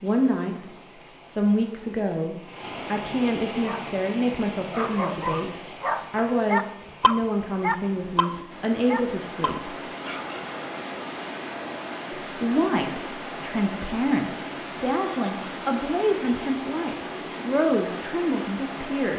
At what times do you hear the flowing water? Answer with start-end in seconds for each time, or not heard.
0.0-19.1.